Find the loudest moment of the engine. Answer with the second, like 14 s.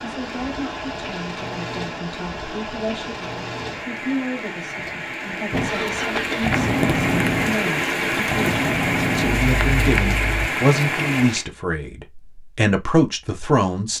7 s.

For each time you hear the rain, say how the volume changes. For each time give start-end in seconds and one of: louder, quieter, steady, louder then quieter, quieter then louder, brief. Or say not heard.
0.0-11.4 louder.